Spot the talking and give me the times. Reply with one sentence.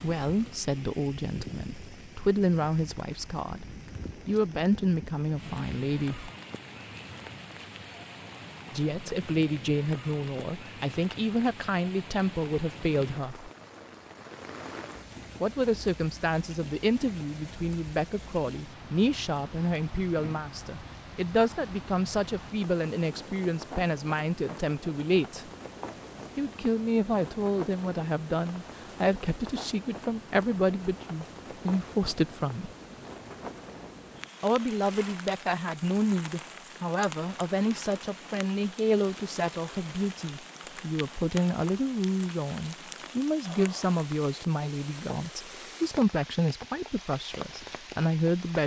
You can hear the talking from 0.0 to 3.6 s, from 4.2 to 6.3 s, from 8.7 to 13.5 s, from 15.4 to 25.4 s, from 26.4 to 32.7 s and from 34.4 to 48.6 s.